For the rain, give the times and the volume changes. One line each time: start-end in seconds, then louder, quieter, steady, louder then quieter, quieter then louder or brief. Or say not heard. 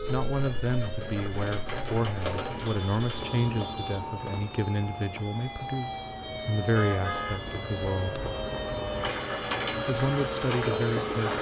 0.0-11.3 quieter then louder.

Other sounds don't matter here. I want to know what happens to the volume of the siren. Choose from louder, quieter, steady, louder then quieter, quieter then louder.
louder.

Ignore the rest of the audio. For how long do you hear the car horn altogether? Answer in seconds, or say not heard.
2 s.